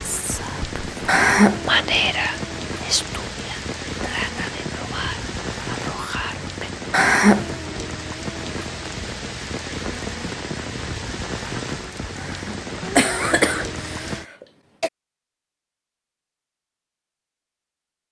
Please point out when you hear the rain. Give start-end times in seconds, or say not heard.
0.0-14.2.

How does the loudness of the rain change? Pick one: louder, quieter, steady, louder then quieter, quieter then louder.
steady.